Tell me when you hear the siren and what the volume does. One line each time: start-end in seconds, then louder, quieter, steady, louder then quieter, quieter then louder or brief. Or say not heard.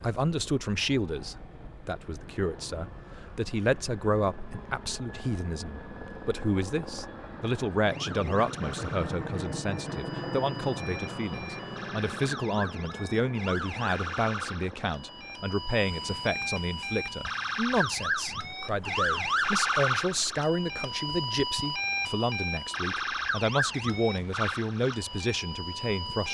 0.0-26.2 louder.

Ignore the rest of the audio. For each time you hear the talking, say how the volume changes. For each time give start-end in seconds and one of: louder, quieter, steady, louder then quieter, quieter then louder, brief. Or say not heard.
0.0-26.2 steady.